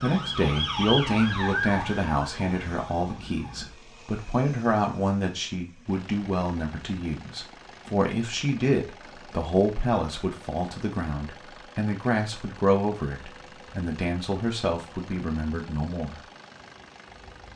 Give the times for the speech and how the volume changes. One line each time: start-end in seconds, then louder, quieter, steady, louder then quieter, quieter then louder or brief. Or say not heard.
0.0-16.2 steady.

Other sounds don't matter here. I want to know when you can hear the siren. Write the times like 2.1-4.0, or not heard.
0.0-3.7.